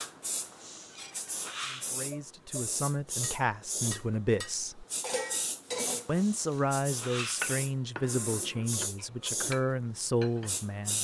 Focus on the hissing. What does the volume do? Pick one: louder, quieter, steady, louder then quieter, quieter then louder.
steady.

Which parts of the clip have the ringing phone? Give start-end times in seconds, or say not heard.
not heard.